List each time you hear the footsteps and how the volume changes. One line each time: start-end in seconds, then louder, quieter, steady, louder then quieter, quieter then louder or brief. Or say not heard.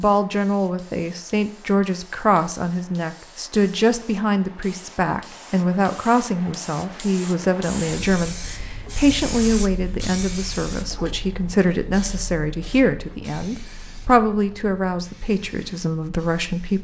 not heard.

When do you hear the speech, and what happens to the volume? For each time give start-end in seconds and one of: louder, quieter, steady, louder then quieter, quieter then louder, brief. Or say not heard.
0.0-16.7 steady.